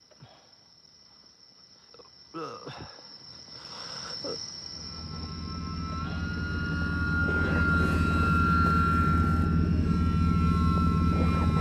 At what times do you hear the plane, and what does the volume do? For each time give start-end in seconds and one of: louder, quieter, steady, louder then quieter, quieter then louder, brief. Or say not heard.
4.6-11.5 louder.